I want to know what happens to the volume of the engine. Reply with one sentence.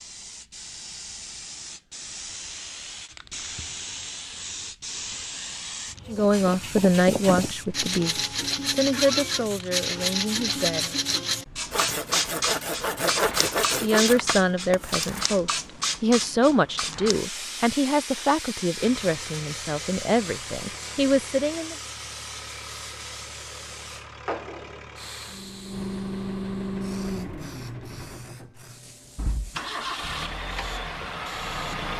The loudness of the engine goes up.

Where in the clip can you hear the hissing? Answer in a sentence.
You can hear the hissing from 0.0 to 31.8 s.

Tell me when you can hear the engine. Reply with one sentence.
The engine can be heard from 18.7 to 31.9 s.